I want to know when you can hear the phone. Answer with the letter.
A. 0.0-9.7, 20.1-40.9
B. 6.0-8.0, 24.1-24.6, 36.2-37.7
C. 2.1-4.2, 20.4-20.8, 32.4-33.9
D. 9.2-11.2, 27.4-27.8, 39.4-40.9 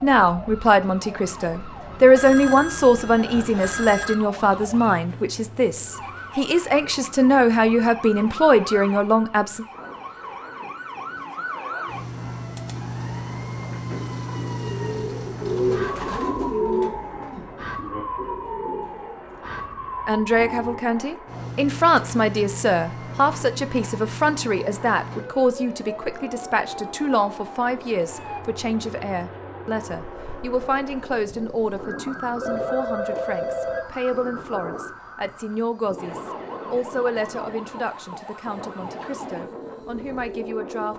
C.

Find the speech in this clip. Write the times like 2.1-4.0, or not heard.
0.0-9.7, 20.1-40.9.